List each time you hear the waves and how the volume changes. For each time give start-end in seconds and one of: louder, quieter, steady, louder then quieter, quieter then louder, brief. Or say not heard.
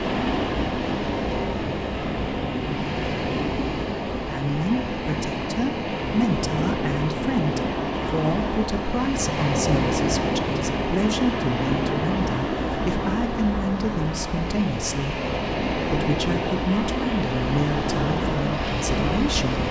0.0-19.6 steady.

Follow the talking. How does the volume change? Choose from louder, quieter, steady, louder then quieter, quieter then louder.
steady.